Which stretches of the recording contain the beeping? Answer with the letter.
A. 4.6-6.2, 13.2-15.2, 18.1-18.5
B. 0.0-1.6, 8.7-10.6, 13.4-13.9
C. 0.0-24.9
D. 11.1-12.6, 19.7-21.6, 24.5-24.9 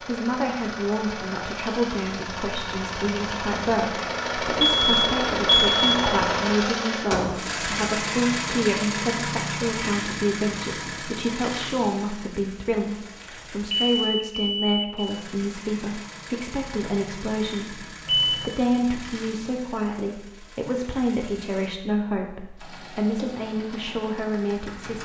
A.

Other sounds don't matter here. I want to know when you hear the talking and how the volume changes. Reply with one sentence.
You can hear the talking from 0.0 to 24.9 s, at a steady volume.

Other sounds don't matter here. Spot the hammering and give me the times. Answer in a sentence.
You can't hear the hammering here.